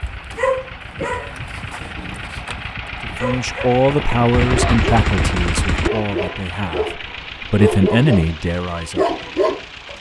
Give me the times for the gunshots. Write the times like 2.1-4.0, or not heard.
3.9-5.9.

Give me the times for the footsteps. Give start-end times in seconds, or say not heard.
not heard.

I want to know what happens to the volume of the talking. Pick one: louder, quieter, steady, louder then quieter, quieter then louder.
quieter then louder.